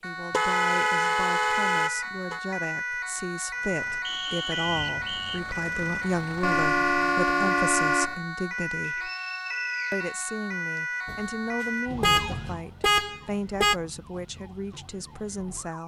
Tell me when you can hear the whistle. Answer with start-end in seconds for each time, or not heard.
4.0-5.4, 8.8-10.8.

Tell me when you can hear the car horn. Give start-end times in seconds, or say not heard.
0.3-2.4, 6.4-8.2, 11.1-13.8.